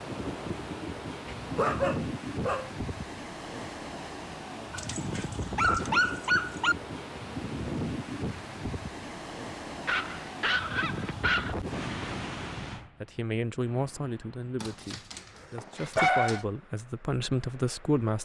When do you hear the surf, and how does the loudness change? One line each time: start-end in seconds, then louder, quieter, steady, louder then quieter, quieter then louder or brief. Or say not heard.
0.0-18.1 quieter.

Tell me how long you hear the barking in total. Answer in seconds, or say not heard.
7 s.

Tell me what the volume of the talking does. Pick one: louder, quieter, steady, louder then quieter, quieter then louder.
quieter then louder.